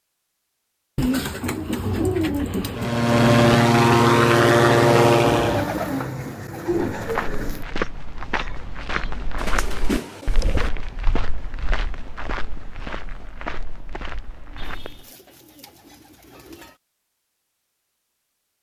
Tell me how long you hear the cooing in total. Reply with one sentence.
The cooing can be heard for 8 seconds in total.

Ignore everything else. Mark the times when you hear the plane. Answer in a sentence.
You can hear the plane from 2.8 to 5.7 s.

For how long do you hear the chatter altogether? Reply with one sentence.
You can't hear the chatter here.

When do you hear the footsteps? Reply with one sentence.
The footsteps can be heard from 7.0 to 15.1 s.